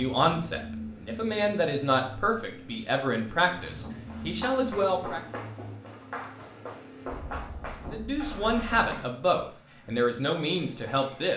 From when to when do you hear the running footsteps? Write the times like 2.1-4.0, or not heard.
3.5-9.1.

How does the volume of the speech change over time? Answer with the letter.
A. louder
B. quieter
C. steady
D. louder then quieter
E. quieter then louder
C.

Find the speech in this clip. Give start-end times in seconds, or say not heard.
0.0-5.2, 7.8-11.3.